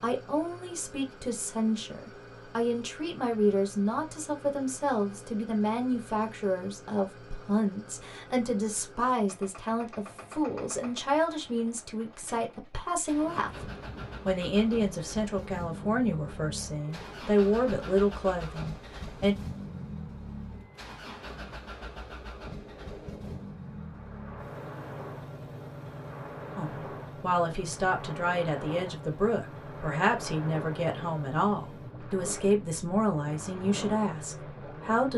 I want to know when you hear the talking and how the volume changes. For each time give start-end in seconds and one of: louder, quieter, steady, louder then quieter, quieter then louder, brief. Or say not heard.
0.0-19.4 steady
26.6-35.1 steady.